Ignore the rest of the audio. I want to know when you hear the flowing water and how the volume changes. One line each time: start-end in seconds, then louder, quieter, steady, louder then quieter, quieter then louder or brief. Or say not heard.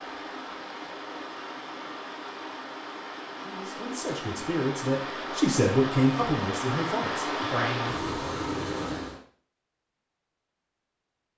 0.0-9.2 louder.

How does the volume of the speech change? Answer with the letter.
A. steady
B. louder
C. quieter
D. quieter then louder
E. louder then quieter
E.